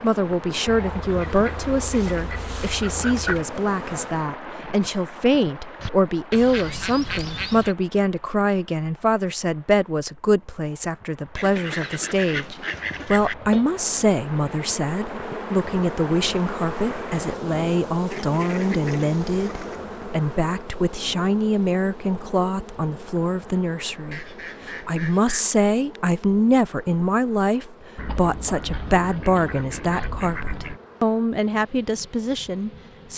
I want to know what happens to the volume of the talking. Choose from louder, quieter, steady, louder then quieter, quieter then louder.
steady.